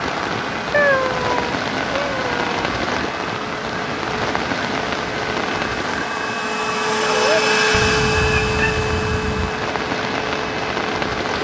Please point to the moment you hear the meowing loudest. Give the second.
1 s.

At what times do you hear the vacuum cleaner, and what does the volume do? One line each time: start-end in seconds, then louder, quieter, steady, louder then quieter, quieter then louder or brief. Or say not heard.
0.0-11.3 louder then quieter.